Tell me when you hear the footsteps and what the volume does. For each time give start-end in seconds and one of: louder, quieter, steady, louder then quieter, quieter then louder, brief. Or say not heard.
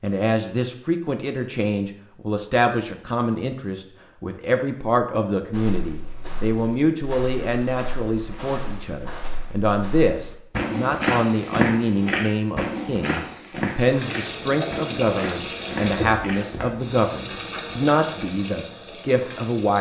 5.5-16.8 louder then quieter.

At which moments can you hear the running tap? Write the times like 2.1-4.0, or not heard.
13.7-19.7.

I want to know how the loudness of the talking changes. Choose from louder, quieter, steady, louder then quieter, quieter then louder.
steady.